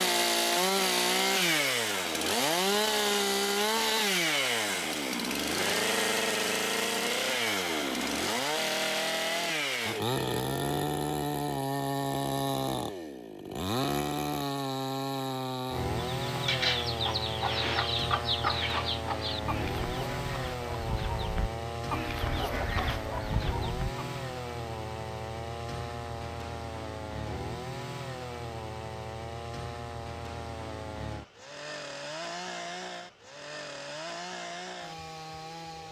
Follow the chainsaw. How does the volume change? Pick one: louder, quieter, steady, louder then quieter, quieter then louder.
quieter.